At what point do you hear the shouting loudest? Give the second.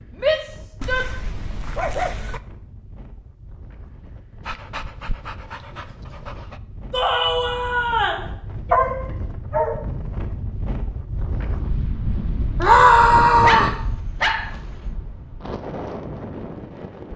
13 s.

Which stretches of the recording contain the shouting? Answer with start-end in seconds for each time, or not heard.
0.2-1.1, 6.9-8.2, 12.6-13.8.